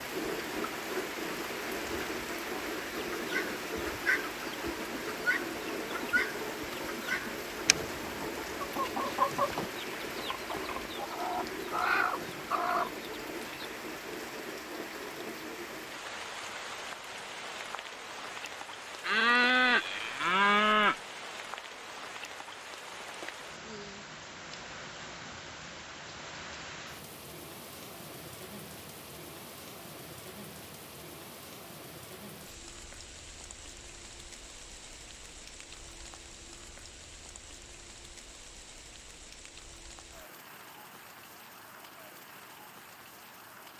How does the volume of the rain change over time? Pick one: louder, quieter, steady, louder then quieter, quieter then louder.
quieter.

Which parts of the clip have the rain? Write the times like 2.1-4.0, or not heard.
0.0-43.7.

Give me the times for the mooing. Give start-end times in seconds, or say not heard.
19.0-20.9.